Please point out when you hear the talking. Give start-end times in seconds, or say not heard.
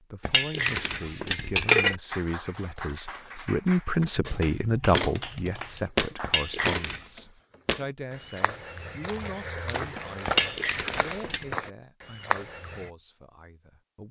0.0-14.0.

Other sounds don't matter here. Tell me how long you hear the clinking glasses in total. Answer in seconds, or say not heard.
4 s.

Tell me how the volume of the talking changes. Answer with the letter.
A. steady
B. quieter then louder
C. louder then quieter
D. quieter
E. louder
C.